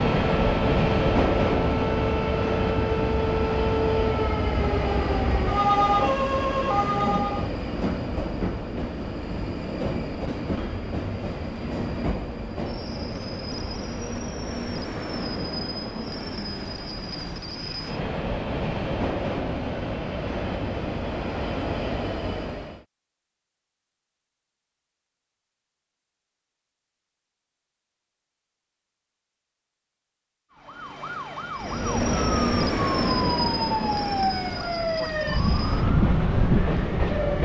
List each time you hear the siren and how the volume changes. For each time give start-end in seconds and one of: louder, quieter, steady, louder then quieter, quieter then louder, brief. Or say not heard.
0.1-7.5 louder
30.5-37.4 louder.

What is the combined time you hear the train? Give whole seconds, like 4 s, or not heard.
29 s.